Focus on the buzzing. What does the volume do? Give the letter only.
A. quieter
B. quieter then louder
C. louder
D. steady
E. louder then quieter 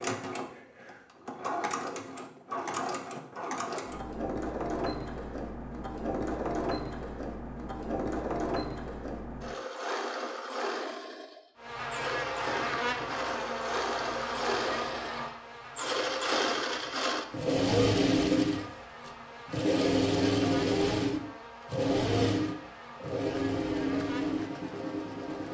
A.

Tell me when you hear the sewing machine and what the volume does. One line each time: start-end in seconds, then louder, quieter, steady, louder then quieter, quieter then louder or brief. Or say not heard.
0.0-25.4 louder.